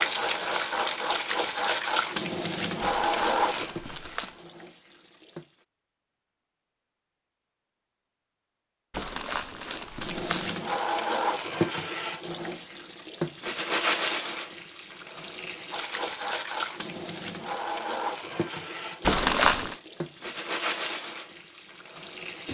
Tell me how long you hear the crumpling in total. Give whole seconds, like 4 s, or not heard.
4 s.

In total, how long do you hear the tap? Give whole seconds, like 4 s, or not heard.
18 s.